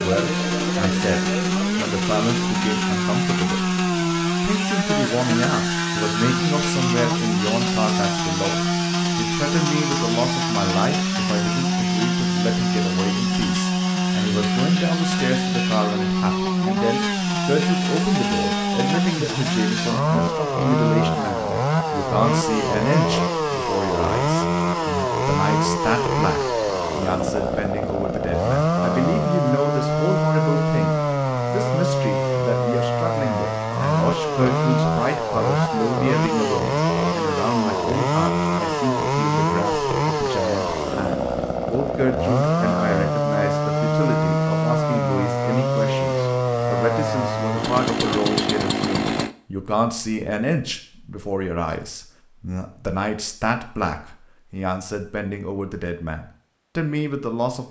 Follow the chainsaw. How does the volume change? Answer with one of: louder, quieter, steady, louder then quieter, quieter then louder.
steady.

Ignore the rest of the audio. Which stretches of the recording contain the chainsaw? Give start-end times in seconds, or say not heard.
0.0-49.4.